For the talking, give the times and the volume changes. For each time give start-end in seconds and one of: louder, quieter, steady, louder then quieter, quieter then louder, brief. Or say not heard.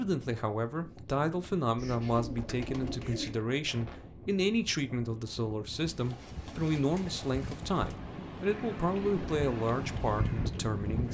0.0-11.0 steady.